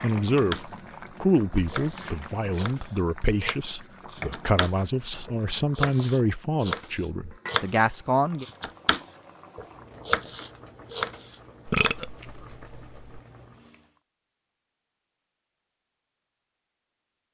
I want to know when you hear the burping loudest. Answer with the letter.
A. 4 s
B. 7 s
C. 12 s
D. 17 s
C.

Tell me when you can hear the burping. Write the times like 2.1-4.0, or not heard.
11.7-13.2.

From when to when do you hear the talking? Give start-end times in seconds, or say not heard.
0.0-8.4.